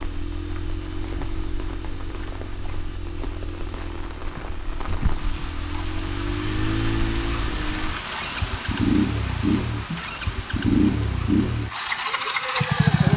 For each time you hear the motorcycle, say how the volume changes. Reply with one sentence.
The motorcycle can be heard from 0.0 to 13.1 s, getting louder.